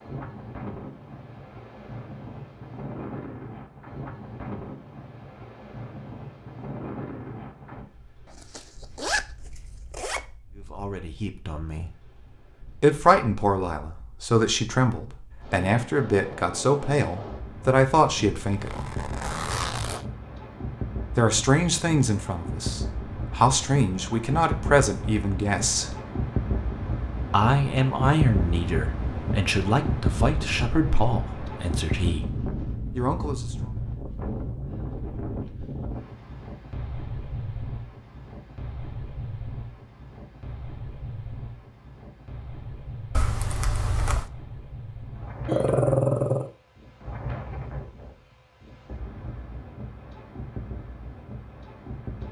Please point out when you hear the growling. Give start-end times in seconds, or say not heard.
45.5-46.5.